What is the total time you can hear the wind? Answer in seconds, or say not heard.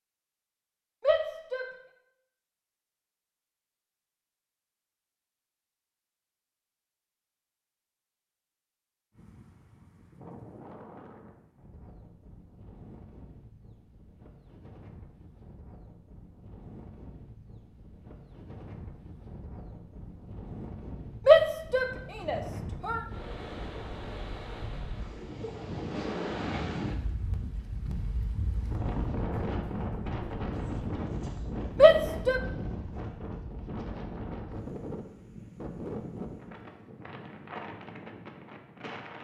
30 s.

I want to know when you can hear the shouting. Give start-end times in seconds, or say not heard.
1.0-1.6, 21.2-23.0, 31.8-32.4.